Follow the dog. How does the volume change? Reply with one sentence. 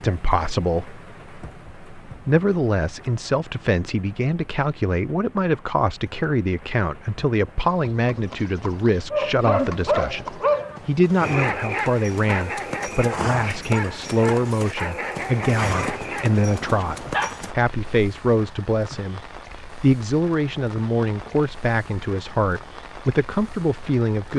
The volume of the dog goes down.